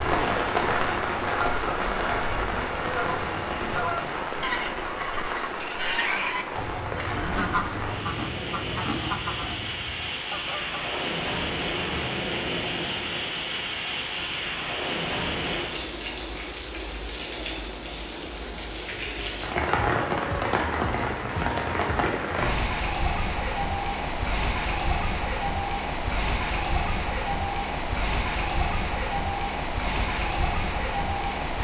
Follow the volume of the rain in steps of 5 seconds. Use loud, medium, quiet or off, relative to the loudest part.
loud, medium, loud, loud, loud, loud, loud.